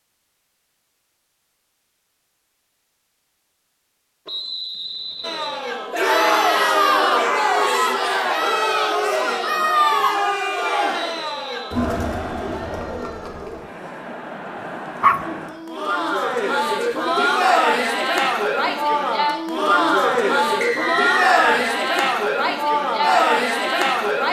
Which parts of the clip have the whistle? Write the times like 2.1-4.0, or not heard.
4.2-5.7, 11.1-11.8, 20.6-21.6.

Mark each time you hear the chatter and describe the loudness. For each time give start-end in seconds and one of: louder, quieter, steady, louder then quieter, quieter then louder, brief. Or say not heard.
5.2-24.2 quieter then louder.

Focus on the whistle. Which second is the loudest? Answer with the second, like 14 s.
21 s.